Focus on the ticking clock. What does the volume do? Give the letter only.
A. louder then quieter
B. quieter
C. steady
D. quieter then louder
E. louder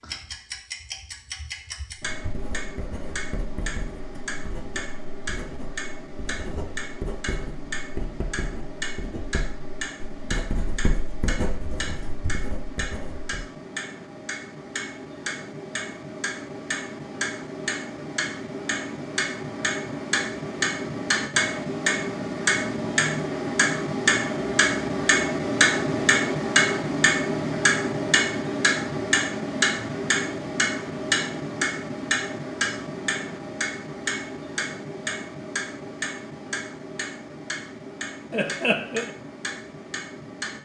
A.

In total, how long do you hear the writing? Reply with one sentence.
The writing can be heard for 11 seconds in total.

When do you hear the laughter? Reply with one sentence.
The laughter can be heard from 38.3 to 39.1 s.